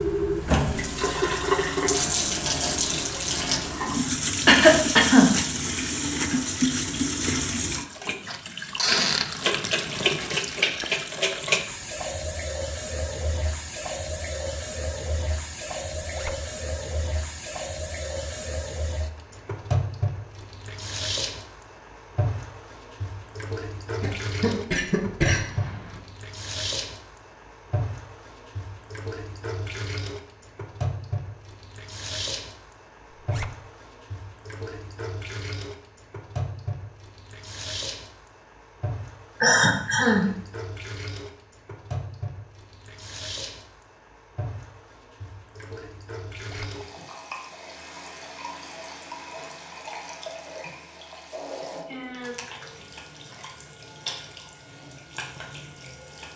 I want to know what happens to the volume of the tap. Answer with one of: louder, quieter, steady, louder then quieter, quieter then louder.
quieter.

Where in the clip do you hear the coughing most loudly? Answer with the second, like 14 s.
5 s.